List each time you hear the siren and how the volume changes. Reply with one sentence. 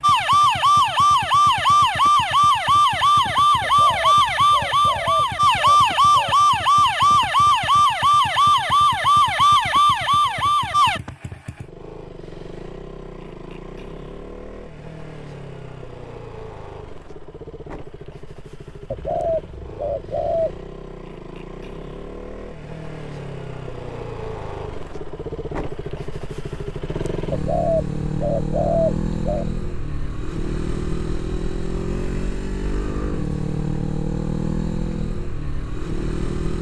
You can hear the siren from 0.0 to 11.0 s, at a steady volume.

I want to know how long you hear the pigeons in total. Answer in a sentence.
You can hear the pigeons for 7 seconds altogether.